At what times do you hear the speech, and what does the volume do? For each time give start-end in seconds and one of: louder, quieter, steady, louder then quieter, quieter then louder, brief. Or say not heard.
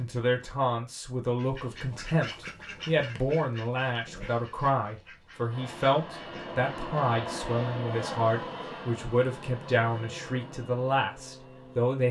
0.0-12.0 steady.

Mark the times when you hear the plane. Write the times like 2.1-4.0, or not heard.
5.5-11.9.